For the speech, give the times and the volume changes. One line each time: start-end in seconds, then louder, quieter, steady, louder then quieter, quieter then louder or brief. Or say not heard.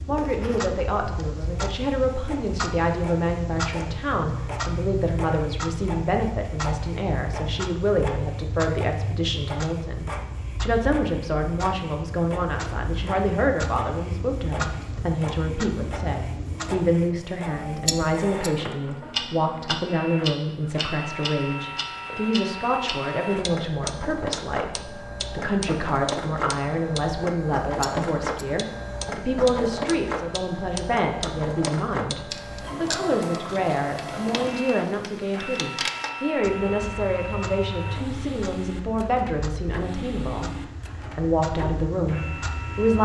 0.1-42.9 steady.